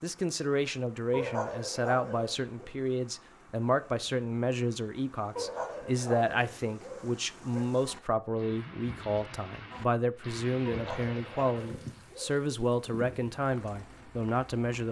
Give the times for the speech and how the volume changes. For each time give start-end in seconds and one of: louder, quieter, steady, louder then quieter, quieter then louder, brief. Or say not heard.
0.0-14.8 steady.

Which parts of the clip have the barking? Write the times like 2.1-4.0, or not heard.
1.1-2.6, 5.3-7.7, 10.7-12.4.